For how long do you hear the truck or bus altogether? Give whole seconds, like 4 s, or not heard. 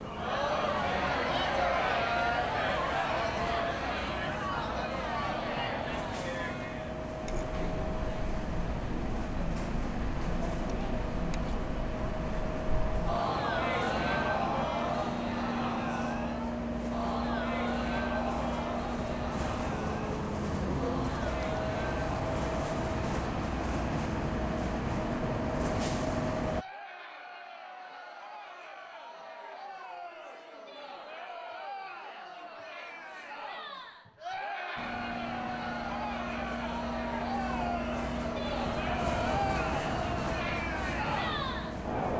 34 s.